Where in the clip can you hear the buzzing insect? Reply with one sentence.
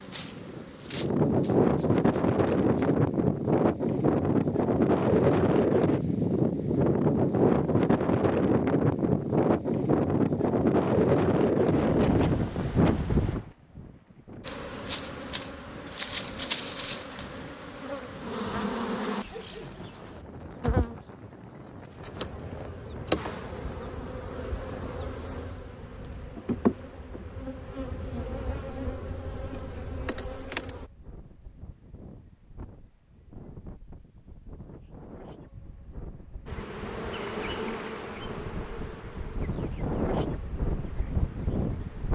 The buzzing insect can be heard from 0.0 to 3.0 s, from 14.4 to 30.9 s and from 36.5 to 42.1 s.